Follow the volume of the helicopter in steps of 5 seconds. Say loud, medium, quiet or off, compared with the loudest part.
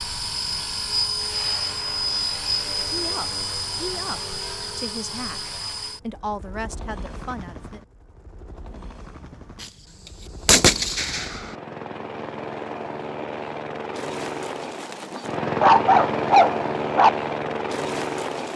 loud, quiet, medium, loud.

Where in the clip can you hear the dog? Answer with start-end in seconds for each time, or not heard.
15.1-17.1.